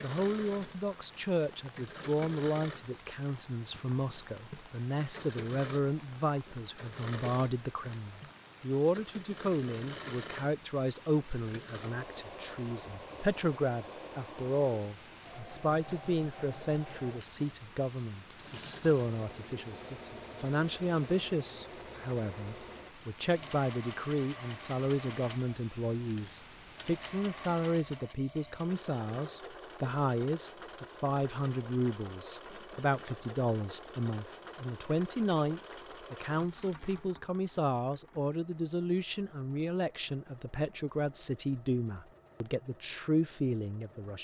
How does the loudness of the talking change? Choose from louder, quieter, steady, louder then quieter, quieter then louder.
steady.